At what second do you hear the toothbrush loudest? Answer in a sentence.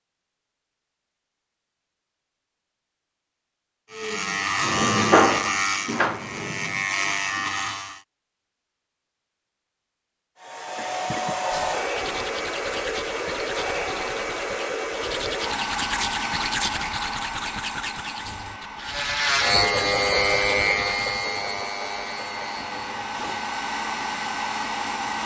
The volume of the toothbrush peaks at 17 seconds.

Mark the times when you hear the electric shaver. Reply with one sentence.
You can hear the electric shaver from 3.9 to 8.0 s and from 18.8 to 25.2 s.